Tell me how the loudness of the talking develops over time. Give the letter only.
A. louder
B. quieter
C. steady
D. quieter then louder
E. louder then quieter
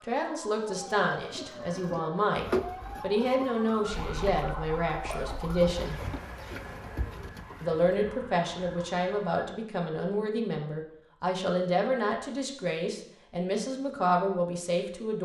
C.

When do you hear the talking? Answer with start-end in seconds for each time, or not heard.
0.0-6.0, 7.6-15.2.